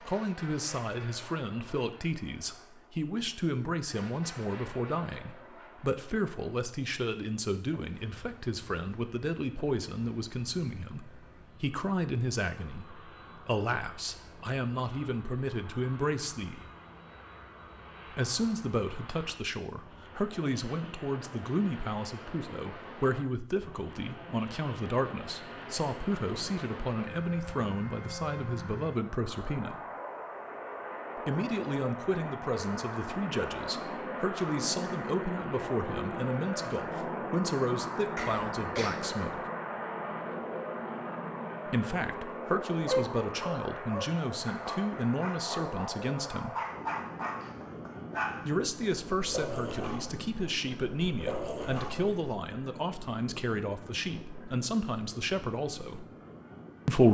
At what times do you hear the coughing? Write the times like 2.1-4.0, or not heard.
38.1-39.0.